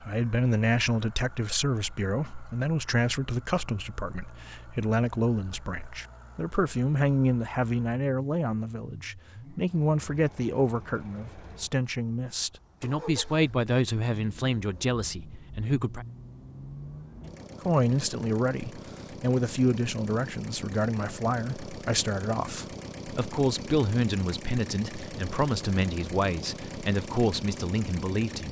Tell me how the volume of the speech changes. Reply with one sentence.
The loudness of the speech stays about the same.